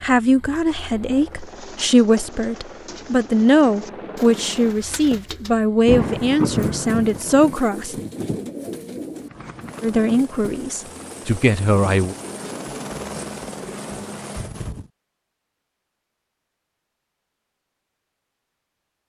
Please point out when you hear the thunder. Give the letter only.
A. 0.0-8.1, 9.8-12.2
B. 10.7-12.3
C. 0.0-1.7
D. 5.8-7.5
D.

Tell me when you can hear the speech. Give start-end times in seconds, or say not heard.
0.0-8.1, 9.8-12.2.